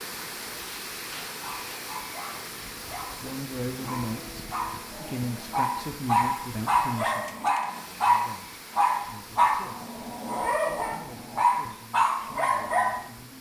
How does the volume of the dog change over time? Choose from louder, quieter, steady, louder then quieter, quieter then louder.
louder.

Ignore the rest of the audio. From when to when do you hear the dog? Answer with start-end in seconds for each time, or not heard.
1.3-13.1.